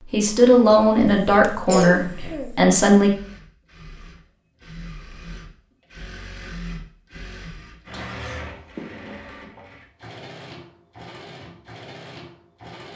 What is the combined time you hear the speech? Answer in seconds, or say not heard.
3 s.